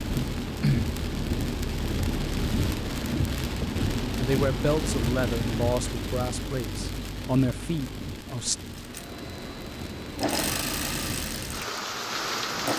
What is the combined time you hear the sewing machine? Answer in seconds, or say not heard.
4 s.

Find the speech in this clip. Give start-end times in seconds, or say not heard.
4.2-8.6.